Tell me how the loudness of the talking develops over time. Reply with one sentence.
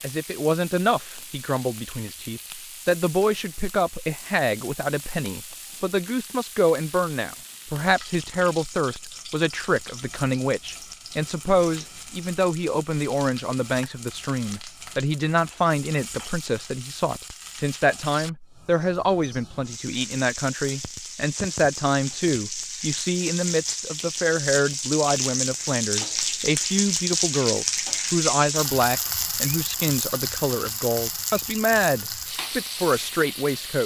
The loudness of the talking stays about the same.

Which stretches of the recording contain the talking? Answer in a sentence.
The talking can be heard from 0.0 to 33.8 s.